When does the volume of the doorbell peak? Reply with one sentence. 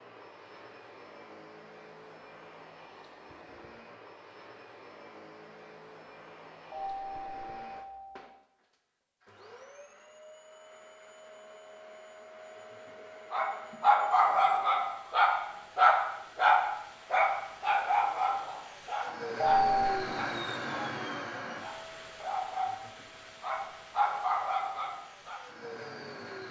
The volume of the doorbell peaks at 20 seconds.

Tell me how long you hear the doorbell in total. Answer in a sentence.
The doorbell can be heard for 2 seconds in total.